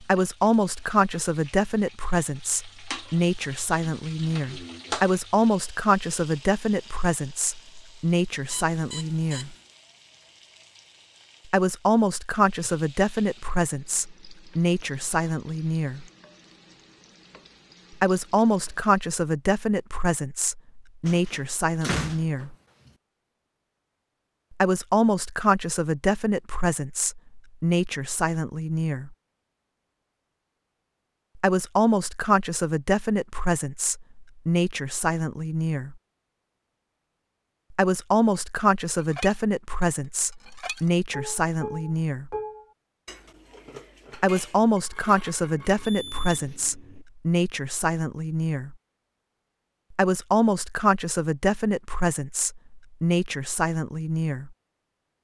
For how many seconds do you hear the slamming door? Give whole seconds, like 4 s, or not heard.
2 s.